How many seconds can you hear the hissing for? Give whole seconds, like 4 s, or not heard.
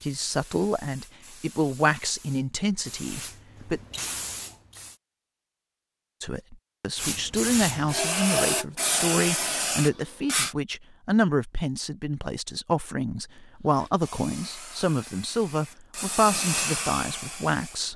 13 s.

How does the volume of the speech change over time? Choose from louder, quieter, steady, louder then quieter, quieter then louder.
steady.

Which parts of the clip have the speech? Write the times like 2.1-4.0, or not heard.
0.0-3.8, 6.2-17.9.